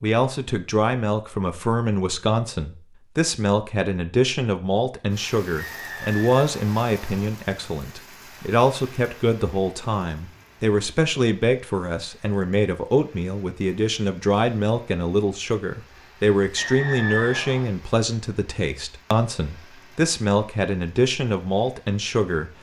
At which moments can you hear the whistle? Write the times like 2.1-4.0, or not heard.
5.5-7.3, 16.6-17.7.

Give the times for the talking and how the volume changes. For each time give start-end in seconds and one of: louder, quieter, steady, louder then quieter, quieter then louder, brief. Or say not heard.
0.0-22.5 steady.